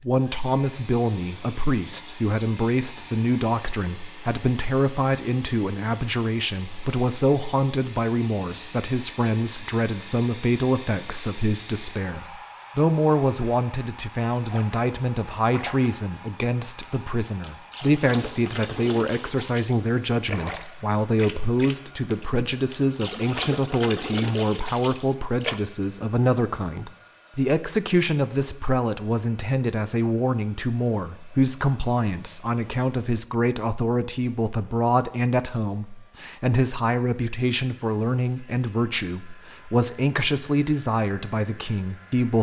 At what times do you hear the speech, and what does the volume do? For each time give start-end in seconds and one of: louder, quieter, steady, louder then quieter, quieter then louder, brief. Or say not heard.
0.0-42.3 steady.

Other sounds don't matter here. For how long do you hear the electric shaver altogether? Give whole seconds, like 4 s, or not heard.
not heard.